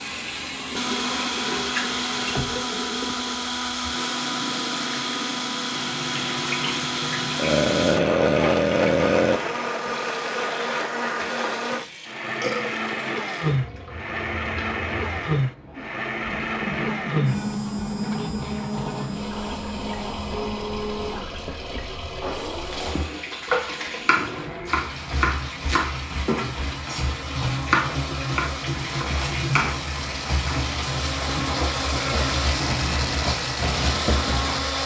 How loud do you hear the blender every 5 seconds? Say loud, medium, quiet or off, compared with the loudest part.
loud, loud, loud, loud, medium, medium, loud.